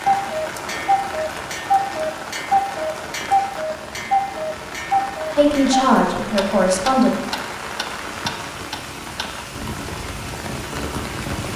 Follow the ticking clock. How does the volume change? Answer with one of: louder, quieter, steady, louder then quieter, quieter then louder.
quieter.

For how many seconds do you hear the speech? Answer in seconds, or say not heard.
2 s.